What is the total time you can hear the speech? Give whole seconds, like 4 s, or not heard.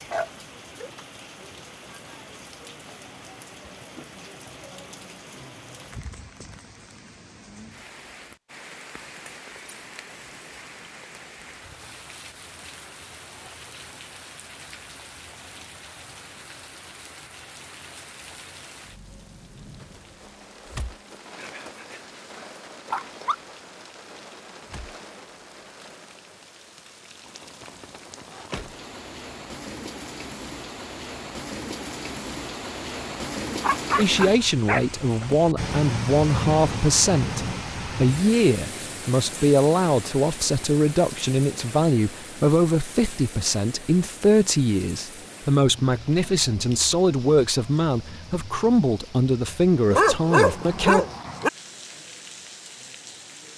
17 s.